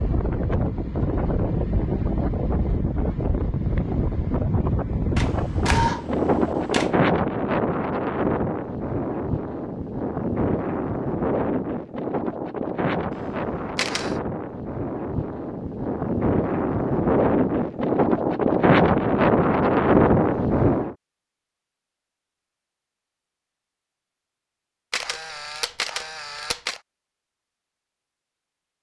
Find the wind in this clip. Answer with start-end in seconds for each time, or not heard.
0.0-20.9.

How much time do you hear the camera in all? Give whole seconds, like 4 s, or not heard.
5 s.